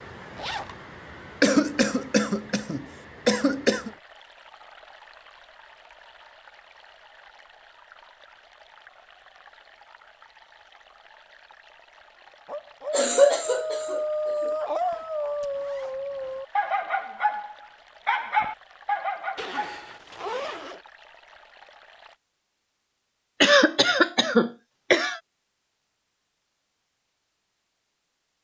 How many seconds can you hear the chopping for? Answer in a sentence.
You can't hear the chopping here.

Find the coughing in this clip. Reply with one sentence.
The coughing can be heard from 1.4 to 3.9 s, from 12.9 to 14.5 s and from 23.4 to 25.2 s.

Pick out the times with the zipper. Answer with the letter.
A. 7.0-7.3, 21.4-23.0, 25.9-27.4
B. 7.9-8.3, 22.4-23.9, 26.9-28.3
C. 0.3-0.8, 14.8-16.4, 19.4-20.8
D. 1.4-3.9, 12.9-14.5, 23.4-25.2
C.